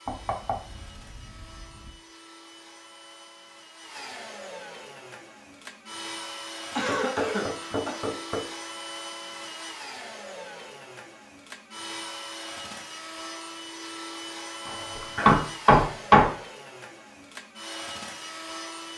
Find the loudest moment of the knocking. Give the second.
16 s.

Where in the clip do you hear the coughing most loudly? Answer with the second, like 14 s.
7 s.